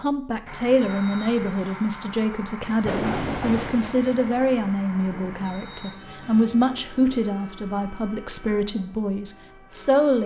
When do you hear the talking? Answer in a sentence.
The talking can be heard from 0.0 to 10.2 s.